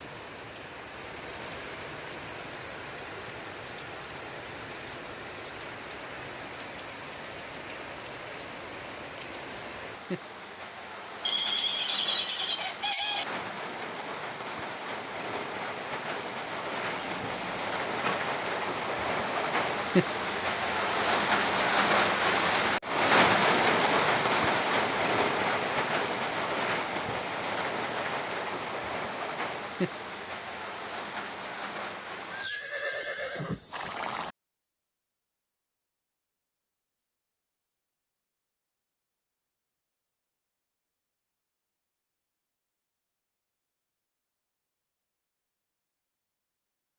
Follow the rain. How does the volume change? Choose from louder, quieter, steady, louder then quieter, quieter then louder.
louder then quieter.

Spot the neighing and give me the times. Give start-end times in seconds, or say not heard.
11.2-13.2, 16.9-18.1, 32.3-34.4.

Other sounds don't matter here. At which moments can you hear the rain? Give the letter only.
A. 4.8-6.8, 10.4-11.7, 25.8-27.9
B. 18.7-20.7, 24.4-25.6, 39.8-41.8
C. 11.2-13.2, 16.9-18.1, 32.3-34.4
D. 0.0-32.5
D.